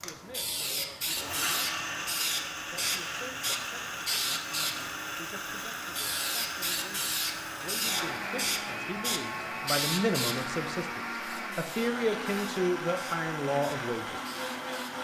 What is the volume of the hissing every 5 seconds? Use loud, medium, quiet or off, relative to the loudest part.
loud, loud, medium.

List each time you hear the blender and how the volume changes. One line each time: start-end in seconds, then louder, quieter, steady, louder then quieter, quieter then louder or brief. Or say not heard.
0.0-14.9 steady.